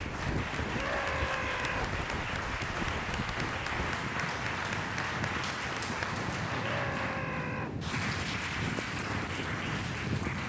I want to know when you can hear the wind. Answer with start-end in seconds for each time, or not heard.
0.0-10.4.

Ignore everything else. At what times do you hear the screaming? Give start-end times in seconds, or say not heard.
0.7-1.9, 6.5-7.8.